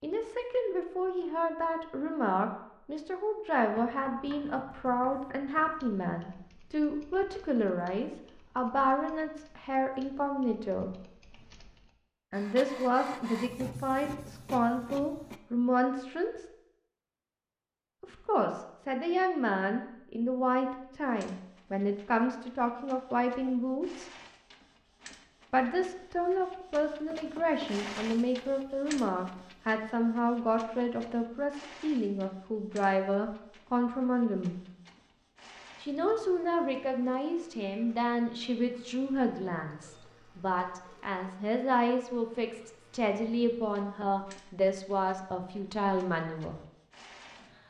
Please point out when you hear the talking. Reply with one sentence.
The talking can be heard from 0.0 to 10.9 s, from 12.3 to 16.4 s, from 18.0 to 24.1 s, from 25.5 to 34.5 s and from 35.8 to 46.6 s.